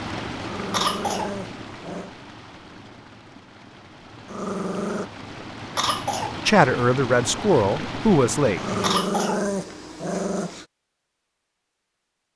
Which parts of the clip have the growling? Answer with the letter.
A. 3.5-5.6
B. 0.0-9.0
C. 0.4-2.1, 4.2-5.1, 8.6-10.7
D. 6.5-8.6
C.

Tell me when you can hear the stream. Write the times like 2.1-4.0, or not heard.
0.0-9.0.